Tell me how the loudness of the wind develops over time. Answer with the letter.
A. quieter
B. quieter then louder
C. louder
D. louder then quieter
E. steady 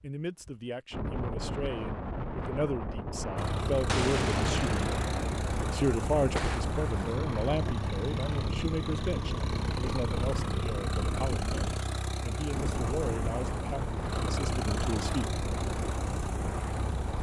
E.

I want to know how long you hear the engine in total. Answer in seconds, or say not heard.
14 s.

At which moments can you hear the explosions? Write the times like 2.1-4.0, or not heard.
3.9-6.7.